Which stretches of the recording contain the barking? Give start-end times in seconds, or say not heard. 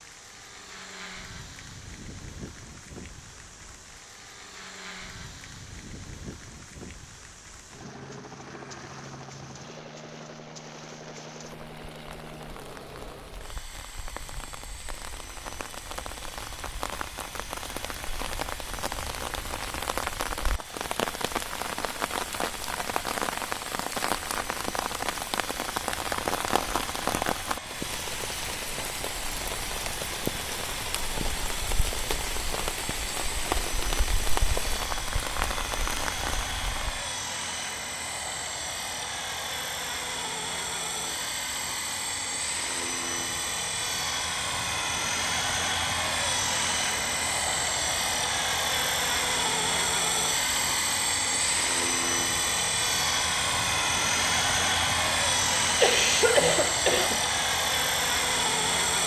not heard.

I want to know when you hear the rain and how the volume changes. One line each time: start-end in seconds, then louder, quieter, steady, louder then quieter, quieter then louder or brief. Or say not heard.
0.0-37.0 louder.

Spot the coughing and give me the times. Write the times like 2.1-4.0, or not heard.
55.8-57.2.